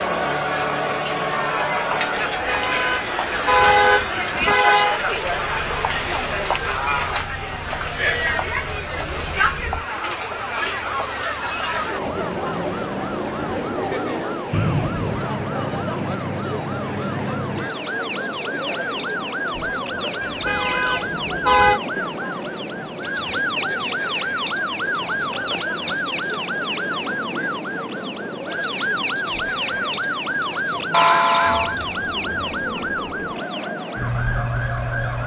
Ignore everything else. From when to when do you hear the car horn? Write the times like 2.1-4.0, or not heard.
2.3-5.0, 20.2-21.8, 30.9-31.8.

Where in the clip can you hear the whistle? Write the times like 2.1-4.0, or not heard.
14.5-15.2.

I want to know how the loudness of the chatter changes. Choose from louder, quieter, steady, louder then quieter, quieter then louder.
quieter.